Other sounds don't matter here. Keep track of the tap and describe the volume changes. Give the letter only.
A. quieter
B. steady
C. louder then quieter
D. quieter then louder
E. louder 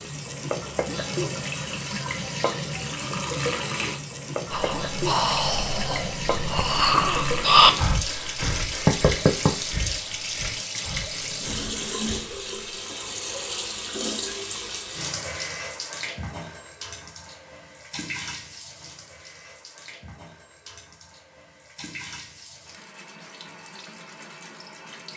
A.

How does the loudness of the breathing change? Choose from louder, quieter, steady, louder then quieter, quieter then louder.
louder then quieter.